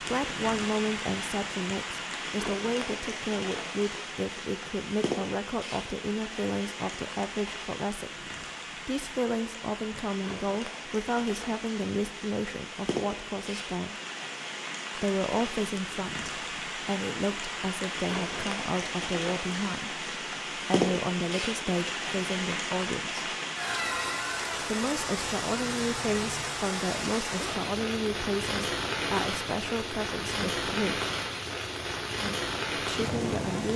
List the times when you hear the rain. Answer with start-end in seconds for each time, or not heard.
0.0-33.7.